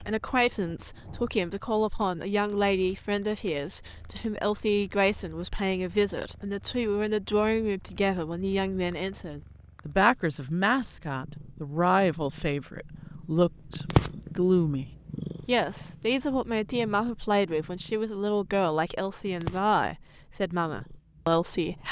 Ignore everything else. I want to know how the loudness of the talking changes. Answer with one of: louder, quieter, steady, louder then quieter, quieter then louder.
steady.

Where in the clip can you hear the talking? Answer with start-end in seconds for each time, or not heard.
0.0-21.8.